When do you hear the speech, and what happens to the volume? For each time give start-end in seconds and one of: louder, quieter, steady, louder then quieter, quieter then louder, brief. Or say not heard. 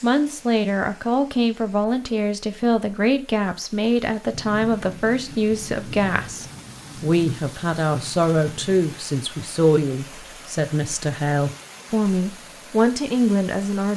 0.0-13.9 steady.